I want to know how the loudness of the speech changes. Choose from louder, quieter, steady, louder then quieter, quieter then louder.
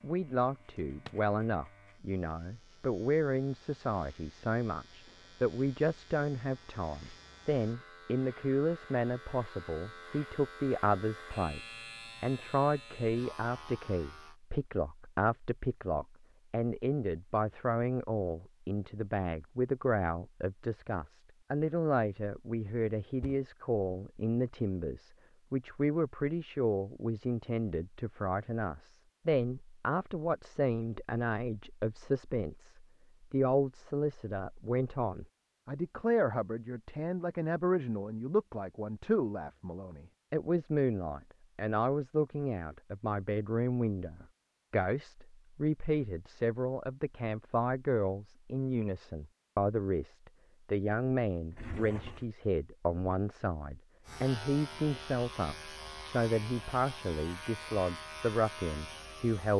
steady.